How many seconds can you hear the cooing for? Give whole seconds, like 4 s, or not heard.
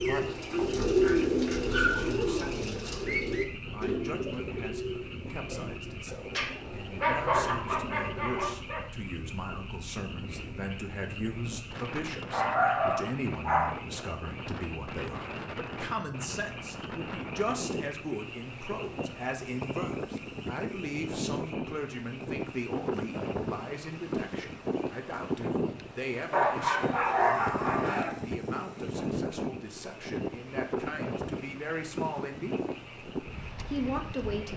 9 s.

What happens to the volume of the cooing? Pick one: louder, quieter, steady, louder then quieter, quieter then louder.
quieter.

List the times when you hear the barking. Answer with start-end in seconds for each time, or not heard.
6.3-8.8, 12.3-13.8, 26.3-28.1.